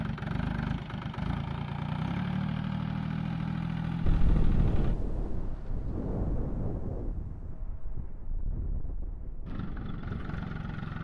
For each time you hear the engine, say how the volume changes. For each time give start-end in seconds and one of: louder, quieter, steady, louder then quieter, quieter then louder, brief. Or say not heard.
0.0-5.0 steady
9.4-10.9 brief.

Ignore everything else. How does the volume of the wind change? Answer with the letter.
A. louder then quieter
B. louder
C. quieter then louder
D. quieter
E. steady
D.